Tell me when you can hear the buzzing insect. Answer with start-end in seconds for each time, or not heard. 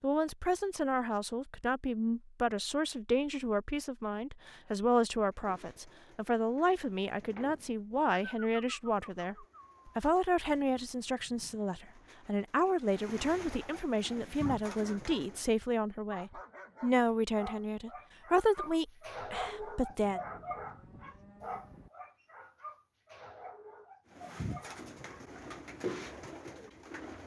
not heard.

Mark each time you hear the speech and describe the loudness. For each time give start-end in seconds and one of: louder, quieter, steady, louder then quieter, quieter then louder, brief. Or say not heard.
0.0-20.2 steady.